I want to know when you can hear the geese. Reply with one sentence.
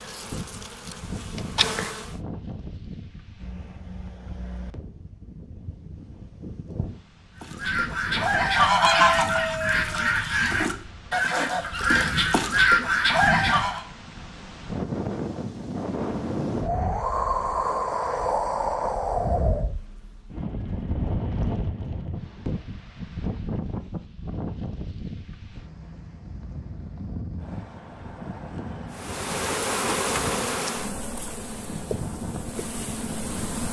The geese can be heard from 7.4 to 13.8 s.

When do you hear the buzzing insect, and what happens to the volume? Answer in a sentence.
You can hear the buzzing insect briefly from 0.0 to 2.1 s; and from 28.9 to 33.6 s, getting quieter.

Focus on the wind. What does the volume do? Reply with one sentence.
The loudness of the wind goes up, then down.